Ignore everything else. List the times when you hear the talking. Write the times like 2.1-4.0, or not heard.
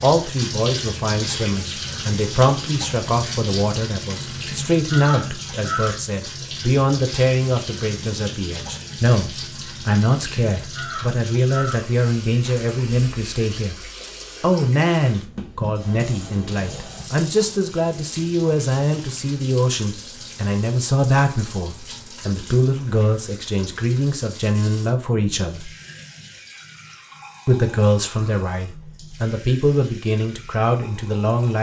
0.0-13.8, 14.4-25.7, 27.4-31.5.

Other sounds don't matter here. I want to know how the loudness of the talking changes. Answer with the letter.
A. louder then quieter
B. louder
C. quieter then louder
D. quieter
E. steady
E.